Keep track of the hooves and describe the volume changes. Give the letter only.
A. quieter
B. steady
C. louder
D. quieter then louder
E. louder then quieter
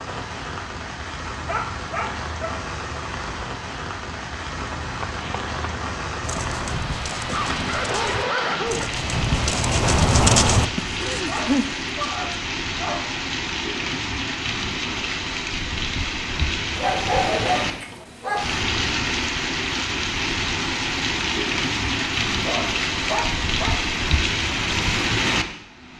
C.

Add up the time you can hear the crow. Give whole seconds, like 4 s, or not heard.
not heard.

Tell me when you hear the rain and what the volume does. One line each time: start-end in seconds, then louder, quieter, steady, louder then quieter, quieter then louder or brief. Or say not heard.
0.0-25.9 louder.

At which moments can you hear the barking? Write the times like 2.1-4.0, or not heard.
1.3-2.5, 7.2-8.9, 11.2-13.1, 16.8-18.6, 22.4-23.9.